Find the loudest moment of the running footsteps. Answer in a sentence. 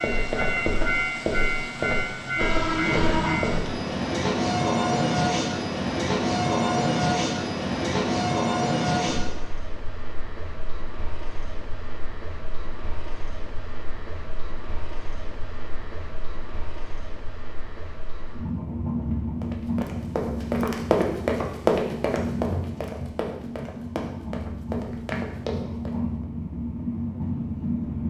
The volume of the running footsteps peaks at 22 seconds.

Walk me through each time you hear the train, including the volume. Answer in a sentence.
The train can be heard from 0.0 to 28.0 s, getting quieter then louder.